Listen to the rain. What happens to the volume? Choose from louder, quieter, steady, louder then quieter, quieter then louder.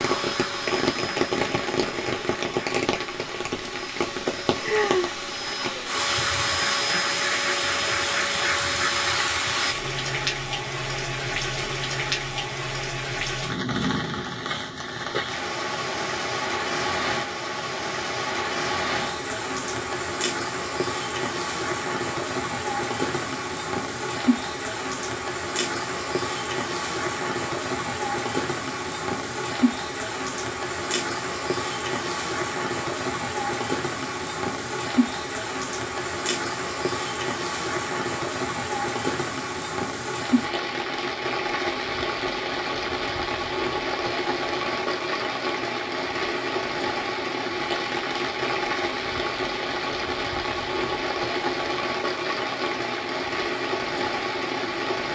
steady.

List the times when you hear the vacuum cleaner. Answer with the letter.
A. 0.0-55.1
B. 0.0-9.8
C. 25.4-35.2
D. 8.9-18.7
B.